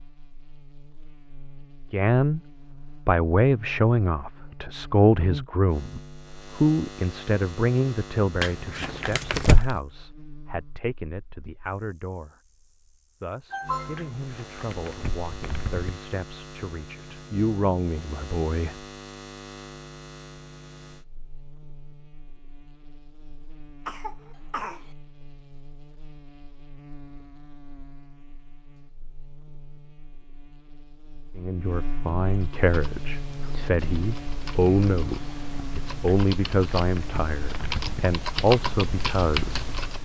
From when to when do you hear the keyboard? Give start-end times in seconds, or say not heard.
32.4-40.0.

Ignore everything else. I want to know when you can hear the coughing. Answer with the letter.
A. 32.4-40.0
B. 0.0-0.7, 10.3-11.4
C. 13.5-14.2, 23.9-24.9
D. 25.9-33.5
C.